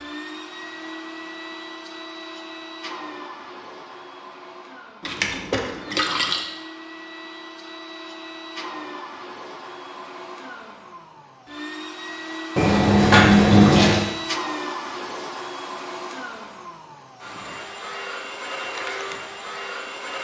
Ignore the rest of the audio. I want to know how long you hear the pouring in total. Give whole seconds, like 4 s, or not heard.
3 s.